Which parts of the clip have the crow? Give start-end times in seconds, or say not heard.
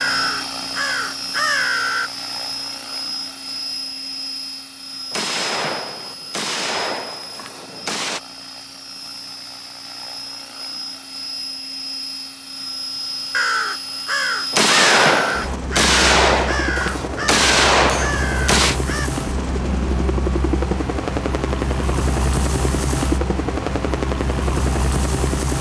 0.0-2.1, 13.3-19.1.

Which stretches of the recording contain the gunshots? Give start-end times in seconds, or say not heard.
5.1-8.2, 14.5-18.8.